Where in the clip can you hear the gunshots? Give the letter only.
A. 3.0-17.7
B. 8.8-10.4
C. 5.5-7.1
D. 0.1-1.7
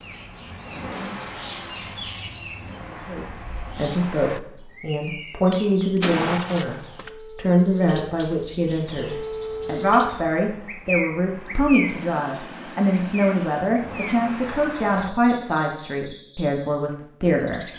C.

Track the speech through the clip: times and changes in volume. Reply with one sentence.
The speech can be heard from 3.0 to 17.7 s, at a steady volume.